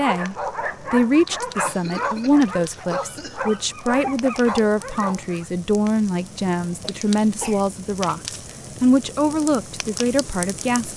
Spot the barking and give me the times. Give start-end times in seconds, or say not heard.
0.0-5.5.